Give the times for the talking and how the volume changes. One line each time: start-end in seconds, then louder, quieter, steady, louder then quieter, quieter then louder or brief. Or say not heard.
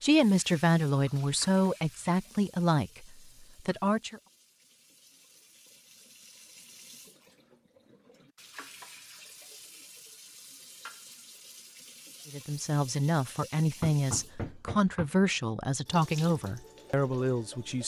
0.0-4.2 quieter
12.3-17.8 steady.